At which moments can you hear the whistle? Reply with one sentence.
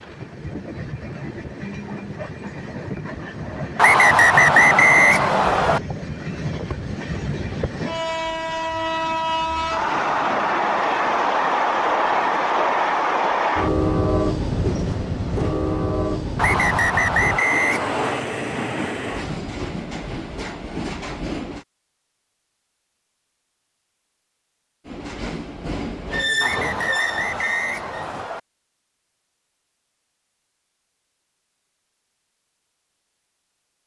The whistle can be heard from 3.8 to 5.8 s, from 16.4 to 18.2 s and from 26.4 to 28.4 s.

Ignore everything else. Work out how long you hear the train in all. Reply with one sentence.
The train can be heard for 25 seconds in total.